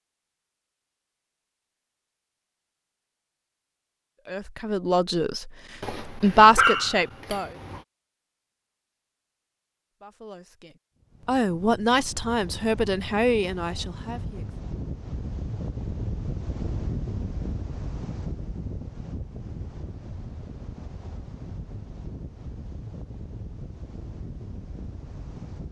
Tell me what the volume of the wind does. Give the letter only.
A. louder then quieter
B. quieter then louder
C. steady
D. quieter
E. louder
A.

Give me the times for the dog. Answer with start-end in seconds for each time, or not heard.
5.8-7.8.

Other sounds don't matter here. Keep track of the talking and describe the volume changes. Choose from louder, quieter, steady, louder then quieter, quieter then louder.
louder then quieter.